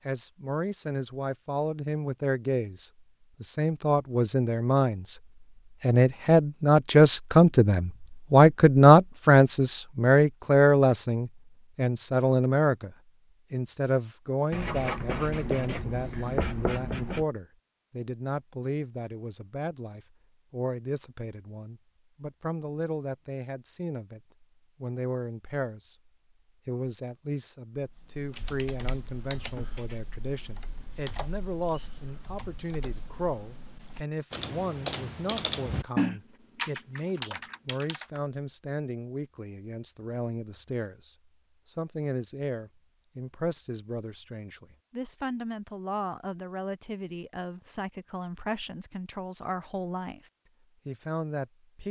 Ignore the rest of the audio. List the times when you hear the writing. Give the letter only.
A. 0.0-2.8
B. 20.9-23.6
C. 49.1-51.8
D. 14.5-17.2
D.